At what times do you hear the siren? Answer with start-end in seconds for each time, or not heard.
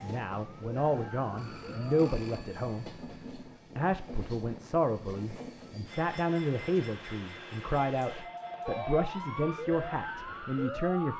0.0-2.1, 8.7-11.1.